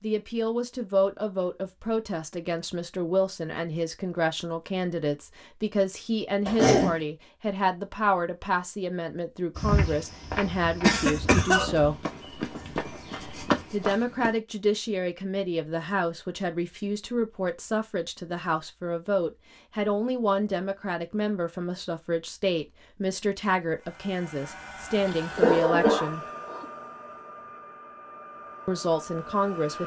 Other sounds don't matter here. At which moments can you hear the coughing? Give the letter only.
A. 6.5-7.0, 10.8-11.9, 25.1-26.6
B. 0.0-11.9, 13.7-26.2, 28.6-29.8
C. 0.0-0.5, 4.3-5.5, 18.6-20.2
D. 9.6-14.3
A.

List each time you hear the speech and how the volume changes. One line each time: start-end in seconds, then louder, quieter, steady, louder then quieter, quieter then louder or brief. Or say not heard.
0.0-11.9 steady
13.7-26.2 steady
28.6-29.8 brief.